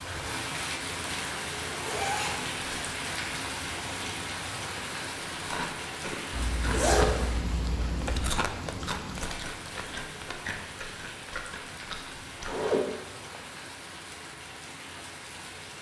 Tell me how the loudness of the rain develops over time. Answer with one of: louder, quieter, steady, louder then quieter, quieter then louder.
quieter.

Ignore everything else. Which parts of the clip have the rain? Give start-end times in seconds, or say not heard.
0.0-15.7.